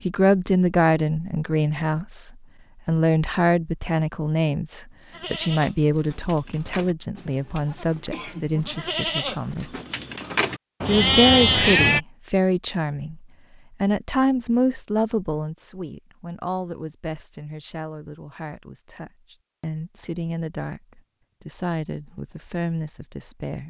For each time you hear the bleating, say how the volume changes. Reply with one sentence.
The bleating can be heard from 5.1 to 12.0 s, getting louder.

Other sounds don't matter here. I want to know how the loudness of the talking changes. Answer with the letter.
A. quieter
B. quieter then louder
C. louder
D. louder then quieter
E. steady
A.